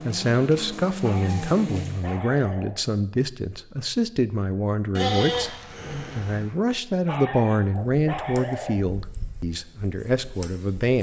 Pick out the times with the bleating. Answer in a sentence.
The bleating can be heard from 5.0 to 6.5 s.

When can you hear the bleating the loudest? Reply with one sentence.
The loudest moment of the bleating is at 5 seconds.